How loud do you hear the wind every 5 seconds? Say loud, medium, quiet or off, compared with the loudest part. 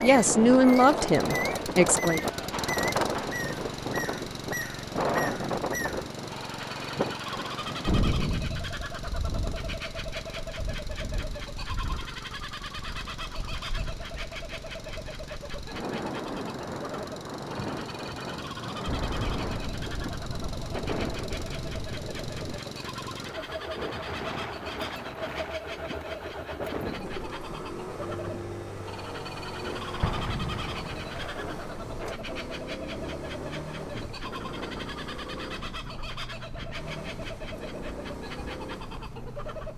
loud, loud, quiet, medium, medium, medium, medium, quiet.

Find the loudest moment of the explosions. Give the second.
8 s.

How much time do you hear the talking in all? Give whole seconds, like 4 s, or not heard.
2 s.